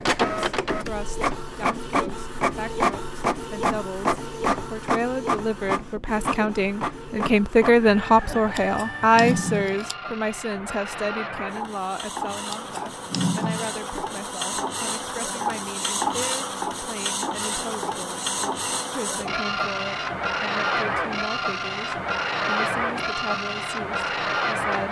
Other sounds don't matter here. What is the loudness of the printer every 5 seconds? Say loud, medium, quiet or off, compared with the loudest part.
loud, medium, medium, loud, loud.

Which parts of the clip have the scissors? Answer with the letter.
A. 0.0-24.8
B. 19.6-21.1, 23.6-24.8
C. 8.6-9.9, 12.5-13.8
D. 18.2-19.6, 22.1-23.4
C.